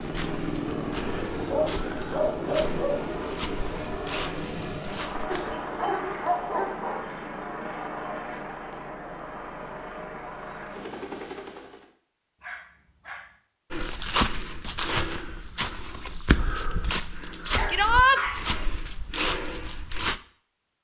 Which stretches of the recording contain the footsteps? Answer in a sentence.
The footsteps can be heard from 0.0 to 5.5 s and from 13.7 to 20.2 s.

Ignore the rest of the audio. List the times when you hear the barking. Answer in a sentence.
The barking can be heard from 1.3 to 3.0 s, from 5.3 to 7.1 s, from 12.4 to 13.3 s and from 17.5 to 18.7 s.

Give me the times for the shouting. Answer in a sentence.
You can hear the shouting from 17.6 to 18.2 s.